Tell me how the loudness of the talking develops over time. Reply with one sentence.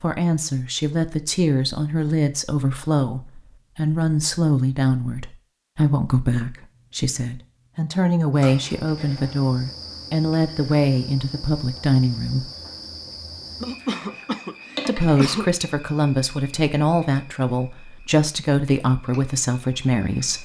The volume of the talking stays about the same.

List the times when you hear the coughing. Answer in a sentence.
You can hear the coughing from 13.6 to 15.5 s.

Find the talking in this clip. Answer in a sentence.
The talking can be heard from 0.0 to 12.4 s and from 14.8 to 20.3 s.